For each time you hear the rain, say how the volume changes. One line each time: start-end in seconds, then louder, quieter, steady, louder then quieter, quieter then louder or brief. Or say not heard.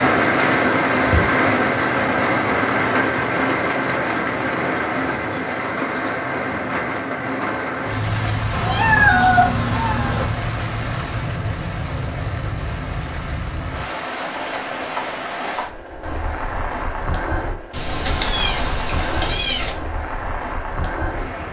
0.0-21.4 quieter.